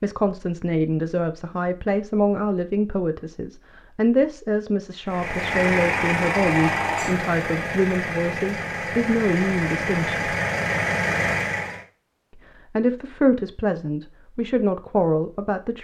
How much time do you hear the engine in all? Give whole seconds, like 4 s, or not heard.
7 s.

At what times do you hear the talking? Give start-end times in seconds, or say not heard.
0.0-10.2, 12.8-15.8.